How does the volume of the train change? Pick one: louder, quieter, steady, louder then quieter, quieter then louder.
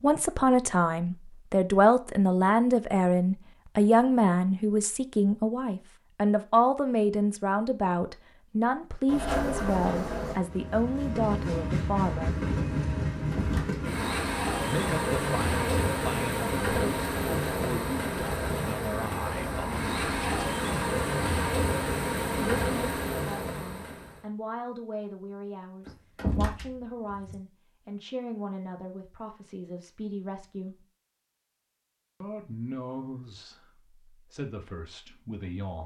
steady.